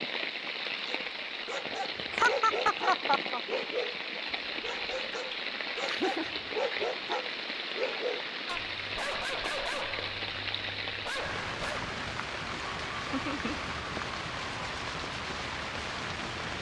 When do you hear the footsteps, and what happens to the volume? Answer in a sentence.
The footsteps can't be heard in this clip.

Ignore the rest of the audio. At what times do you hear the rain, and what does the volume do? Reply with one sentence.
You can hear the rain from 0.0 to 16.5 s, at a steady volume.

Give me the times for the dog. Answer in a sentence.
The dog can be heard from 0.8 to 11.9 s.